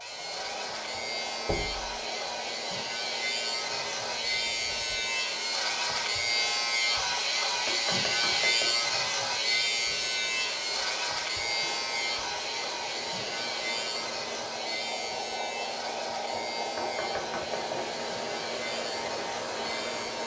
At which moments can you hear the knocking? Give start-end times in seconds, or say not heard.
1.4-1.9, 7.7-8.8, 16.8-17.9.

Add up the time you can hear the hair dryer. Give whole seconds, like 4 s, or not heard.
20 s.